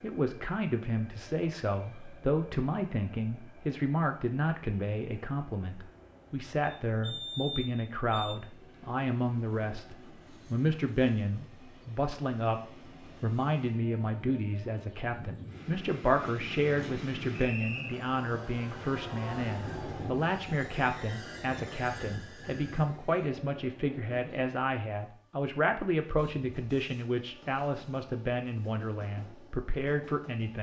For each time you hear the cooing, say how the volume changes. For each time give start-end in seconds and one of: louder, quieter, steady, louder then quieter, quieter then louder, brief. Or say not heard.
not heard.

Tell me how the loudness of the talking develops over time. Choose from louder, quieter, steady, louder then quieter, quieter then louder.
steady.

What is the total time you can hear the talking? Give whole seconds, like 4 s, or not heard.
30 s.